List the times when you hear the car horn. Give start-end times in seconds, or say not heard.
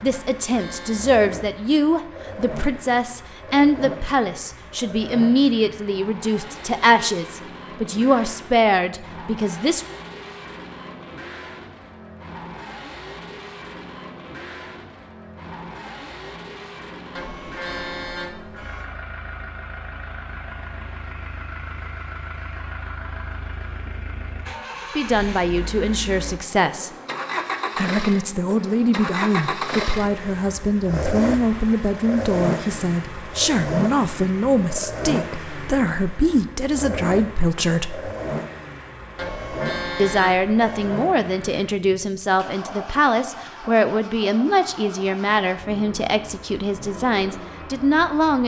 0.1-1.1, 17.1-18.9, 39.1-40.9.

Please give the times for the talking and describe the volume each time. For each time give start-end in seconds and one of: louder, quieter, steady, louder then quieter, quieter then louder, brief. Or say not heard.
0.0-9.8 steady
24.9-26.9 brief
27.8-38.1 steady
40.0-48.4 steady.